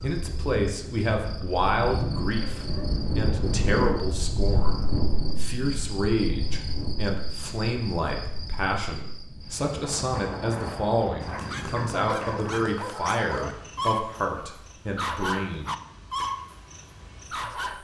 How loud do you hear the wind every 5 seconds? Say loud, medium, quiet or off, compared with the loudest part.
loud, medium, medium, off.